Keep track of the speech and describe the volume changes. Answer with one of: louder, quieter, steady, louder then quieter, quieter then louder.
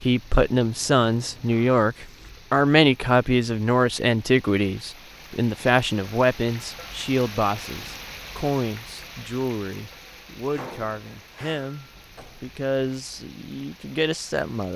quieter.